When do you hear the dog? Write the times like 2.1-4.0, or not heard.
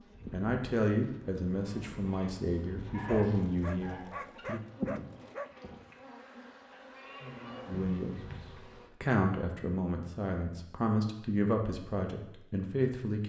3.0-5.5.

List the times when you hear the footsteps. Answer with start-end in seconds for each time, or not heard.
not heard.